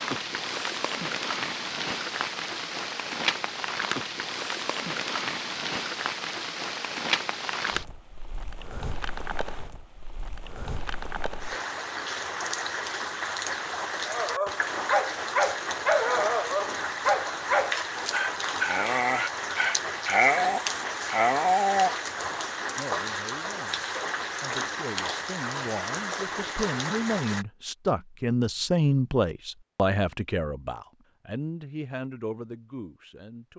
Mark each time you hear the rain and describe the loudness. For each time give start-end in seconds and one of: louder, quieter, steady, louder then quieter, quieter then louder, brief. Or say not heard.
0.0-27.4 steady.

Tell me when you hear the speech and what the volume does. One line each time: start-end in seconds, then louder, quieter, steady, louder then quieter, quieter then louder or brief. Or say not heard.
22.8-33.5 louder then quieter.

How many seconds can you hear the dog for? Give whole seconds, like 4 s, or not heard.
8 s.